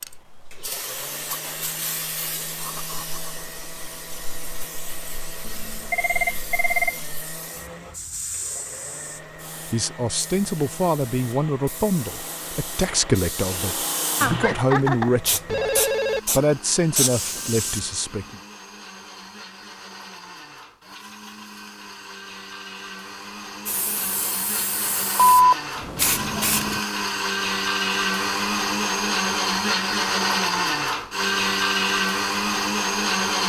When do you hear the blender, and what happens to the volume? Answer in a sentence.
You can hear the blender from 0.0 to 33.4 s, getting louder.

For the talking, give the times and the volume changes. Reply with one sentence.
You can hear the talking from 9.7 to 18.4 s, at a steady volume.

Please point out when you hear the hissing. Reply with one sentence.
You can hear the hissing from 0.0 to 17.9 s and from 23.6 to 26.8 s.